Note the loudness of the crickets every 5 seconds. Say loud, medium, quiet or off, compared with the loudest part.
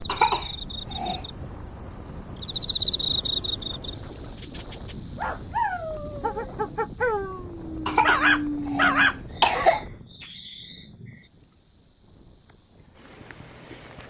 loud, medium, quiet.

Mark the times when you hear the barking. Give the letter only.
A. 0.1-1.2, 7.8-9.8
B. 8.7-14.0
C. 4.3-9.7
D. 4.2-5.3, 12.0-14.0
C.